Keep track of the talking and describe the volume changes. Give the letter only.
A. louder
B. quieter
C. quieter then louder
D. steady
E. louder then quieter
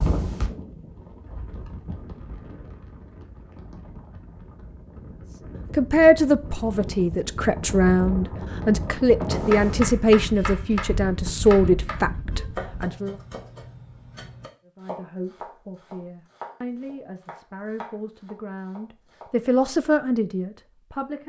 C.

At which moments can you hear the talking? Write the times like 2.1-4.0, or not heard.
5.7-13.2, 14.7-21.2.